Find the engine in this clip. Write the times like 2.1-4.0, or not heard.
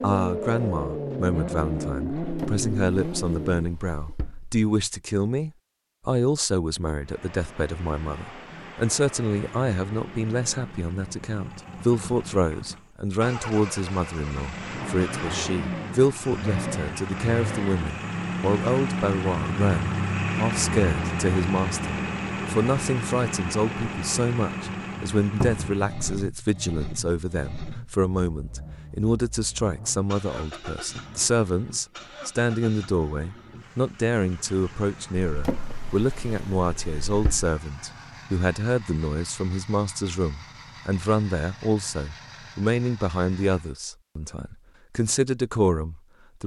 0.0-3.6, 7.0-43.8.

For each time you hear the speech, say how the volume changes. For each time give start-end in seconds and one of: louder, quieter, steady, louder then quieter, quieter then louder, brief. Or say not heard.
0.0-46.4 steady.